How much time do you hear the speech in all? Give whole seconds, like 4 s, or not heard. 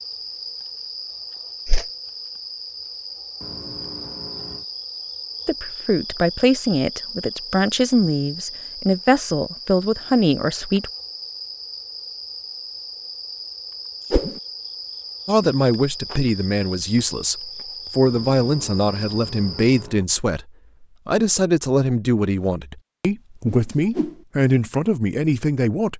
16 s.